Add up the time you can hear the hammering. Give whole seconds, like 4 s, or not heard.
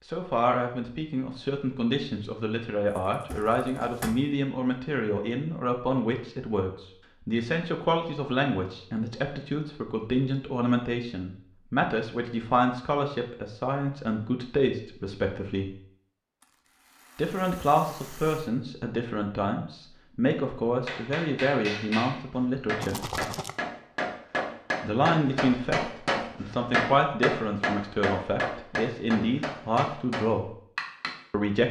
10 s.